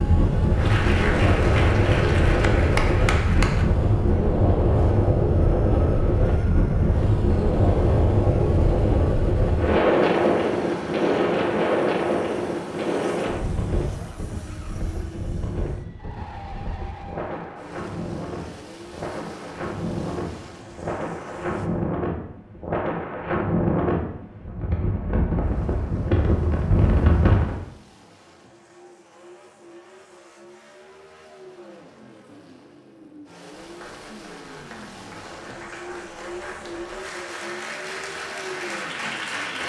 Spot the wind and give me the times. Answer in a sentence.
You can hear the wind from 0.0 to 27.6 s.